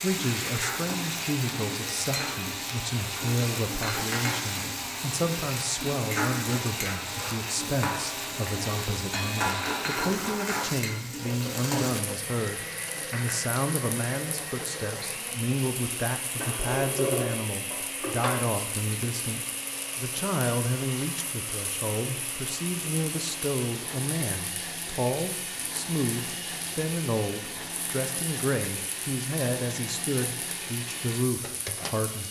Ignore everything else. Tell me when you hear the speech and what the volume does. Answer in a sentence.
The speech can be heard from 0.0 to 32.2 s, at a steady volume.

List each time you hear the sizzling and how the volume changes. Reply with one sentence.
You can hear the sizzling from 0.0 to 32.2 s, getting quieter.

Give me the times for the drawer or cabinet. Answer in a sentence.
The drawer or cabinet can be heard from 16.4 to 18.3 s.